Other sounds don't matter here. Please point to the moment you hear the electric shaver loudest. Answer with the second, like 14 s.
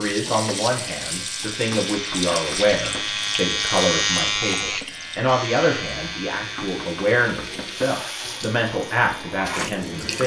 4 s.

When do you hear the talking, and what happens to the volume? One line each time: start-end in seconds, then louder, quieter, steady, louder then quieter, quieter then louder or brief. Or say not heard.
0.0-10.2 steady.